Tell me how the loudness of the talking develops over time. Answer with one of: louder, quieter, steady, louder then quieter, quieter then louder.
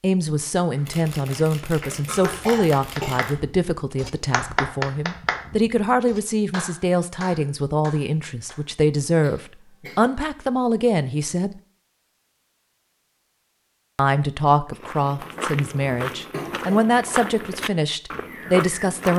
steady.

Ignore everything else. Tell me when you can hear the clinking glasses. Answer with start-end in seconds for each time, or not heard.
not heard.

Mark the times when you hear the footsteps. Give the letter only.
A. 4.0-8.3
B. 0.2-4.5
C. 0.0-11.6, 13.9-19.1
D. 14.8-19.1
D.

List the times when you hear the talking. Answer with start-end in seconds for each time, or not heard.
0.0-11.6, 13.9-19.1.